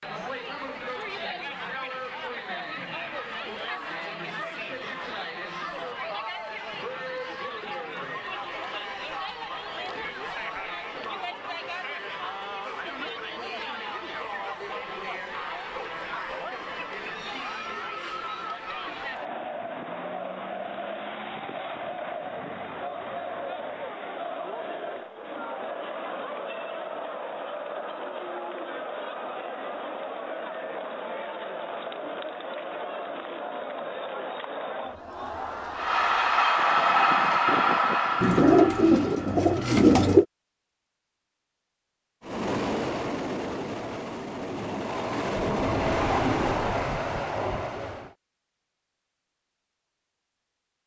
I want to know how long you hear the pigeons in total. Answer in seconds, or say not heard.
2 s.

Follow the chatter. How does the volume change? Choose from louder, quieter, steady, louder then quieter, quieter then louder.
steady.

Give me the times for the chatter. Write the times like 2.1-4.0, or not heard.
0.0-36.6.